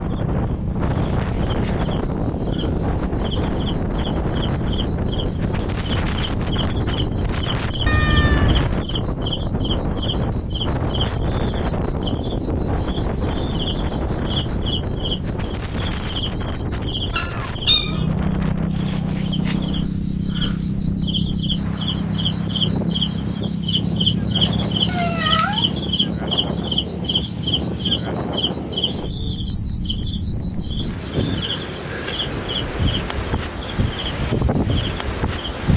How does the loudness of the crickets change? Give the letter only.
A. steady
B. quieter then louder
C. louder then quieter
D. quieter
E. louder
C.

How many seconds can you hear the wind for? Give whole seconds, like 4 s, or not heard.
36 s.